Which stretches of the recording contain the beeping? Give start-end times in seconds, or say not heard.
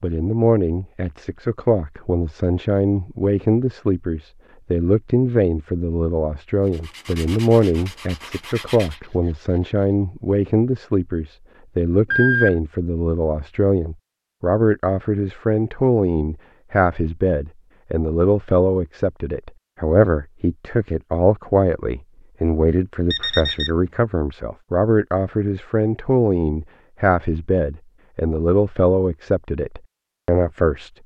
12.1-12.6, 23.1-23.7.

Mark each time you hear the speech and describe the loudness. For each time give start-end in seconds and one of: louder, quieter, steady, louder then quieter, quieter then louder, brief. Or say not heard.
0.0-30.9 steady.